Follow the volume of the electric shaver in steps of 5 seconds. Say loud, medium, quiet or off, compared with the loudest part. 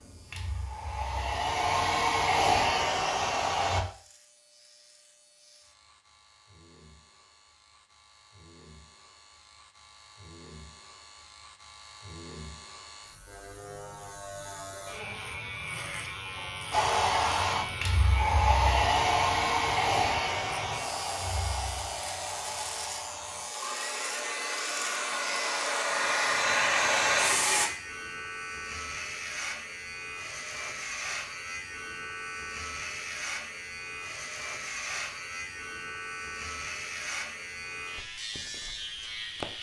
quiet, quiet, medium, loud, loud, loud, loud, loud.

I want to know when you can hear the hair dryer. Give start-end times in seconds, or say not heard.
0.0-3.8, 16.7-27.7.